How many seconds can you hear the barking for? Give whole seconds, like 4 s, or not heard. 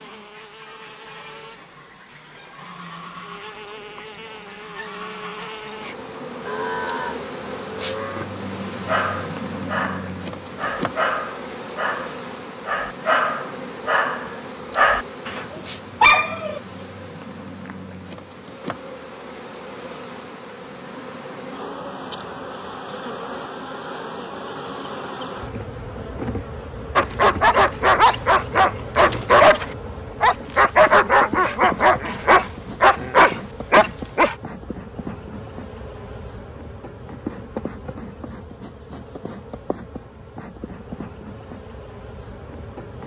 15 s.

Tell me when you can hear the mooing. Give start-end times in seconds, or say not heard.
6.4-8.2.